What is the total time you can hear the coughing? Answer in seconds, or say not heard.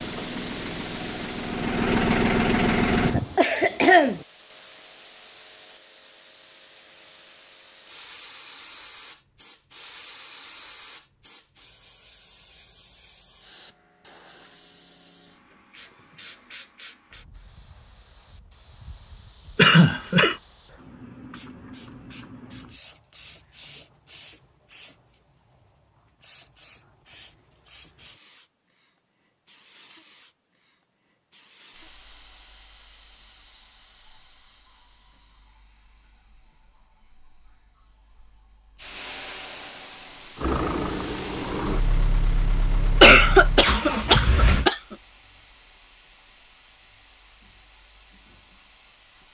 4 s.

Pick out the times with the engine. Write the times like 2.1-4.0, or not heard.
0.0-3.1, 40.4-44.7.